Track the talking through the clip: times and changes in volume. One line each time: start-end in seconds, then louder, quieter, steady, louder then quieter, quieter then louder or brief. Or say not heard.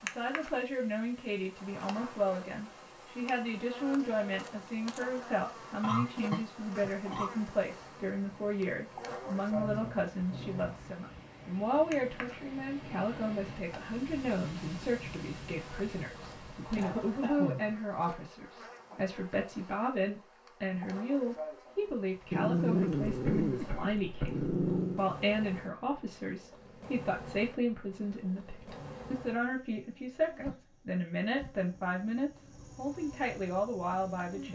0.0-34.4 steady.